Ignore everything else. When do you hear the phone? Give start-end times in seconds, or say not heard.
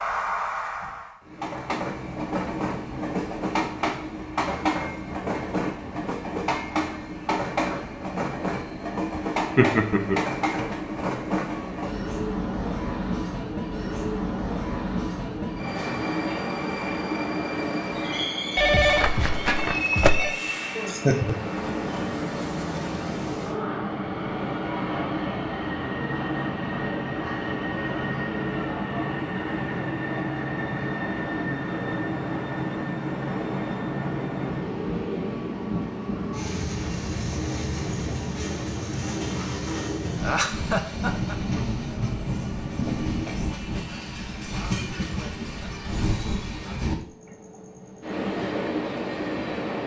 18.6-20.4.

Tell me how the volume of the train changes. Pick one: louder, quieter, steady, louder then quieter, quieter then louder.
steady.